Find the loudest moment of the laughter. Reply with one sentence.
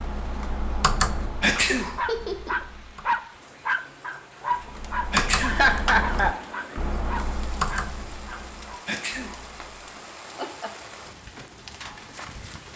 The volume of the laughter peaks at 6 seconds.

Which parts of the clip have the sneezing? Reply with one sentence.
You can hear the sneezing from 1.4 to 1.9 s, from 5.1 to 5.7 s and from 8.8 to 9.3 s.